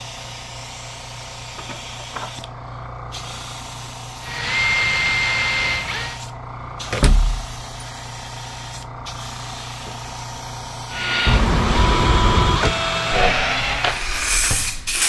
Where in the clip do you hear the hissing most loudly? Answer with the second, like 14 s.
15 s.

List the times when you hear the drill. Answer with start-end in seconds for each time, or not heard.
4.2-6.2, 10.9-15.0.